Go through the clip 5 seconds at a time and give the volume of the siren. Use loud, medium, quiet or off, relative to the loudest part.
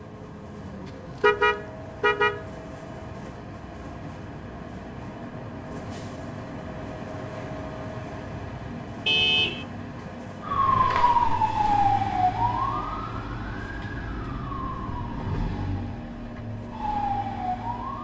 off, off, loud, medium.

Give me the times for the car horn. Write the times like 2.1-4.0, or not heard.
1.2-2.4, 9.1-9.7.